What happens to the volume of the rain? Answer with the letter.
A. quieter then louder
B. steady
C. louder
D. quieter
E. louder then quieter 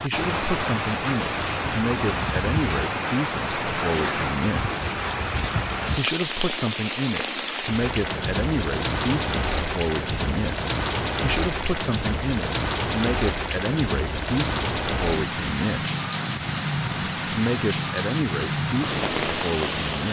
B.